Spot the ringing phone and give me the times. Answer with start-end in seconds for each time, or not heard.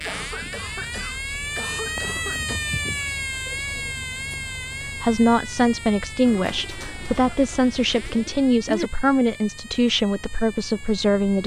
not heard.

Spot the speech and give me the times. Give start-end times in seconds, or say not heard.
4.8-11.4.